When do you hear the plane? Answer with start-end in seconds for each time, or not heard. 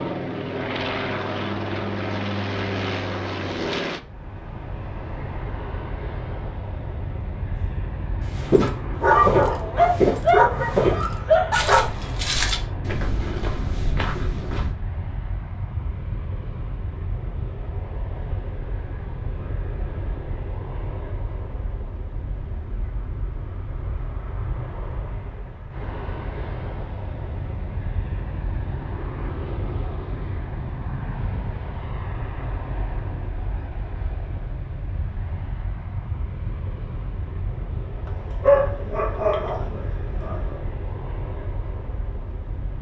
0.0-42.7.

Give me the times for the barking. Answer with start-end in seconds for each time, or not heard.
9.0-11.9, 38.4-40.4.